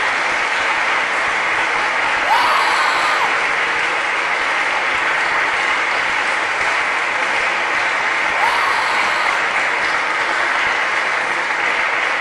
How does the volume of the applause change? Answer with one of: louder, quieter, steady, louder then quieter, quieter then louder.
steady.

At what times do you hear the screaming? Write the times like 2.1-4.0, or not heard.
2.2-3.4, 8.3-9.4.